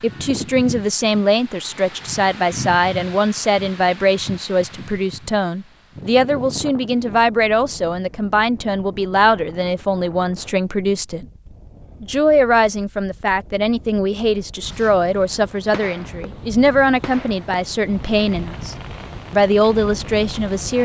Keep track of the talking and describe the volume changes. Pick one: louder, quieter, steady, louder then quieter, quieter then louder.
steady.